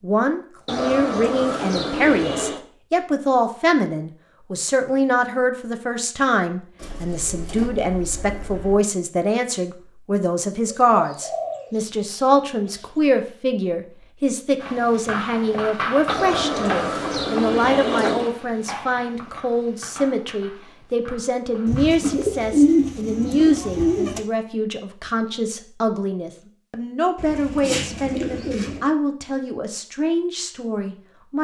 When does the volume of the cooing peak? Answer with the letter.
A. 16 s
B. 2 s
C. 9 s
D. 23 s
D.